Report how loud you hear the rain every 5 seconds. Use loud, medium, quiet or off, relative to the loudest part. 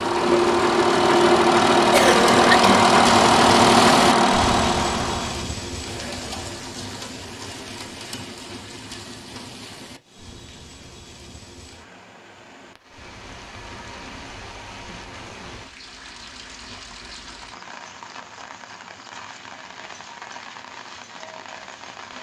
loud, medium, quiet, quiet, quiet.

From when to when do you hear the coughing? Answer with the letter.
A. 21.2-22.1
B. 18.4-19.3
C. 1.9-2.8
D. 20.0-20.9
C.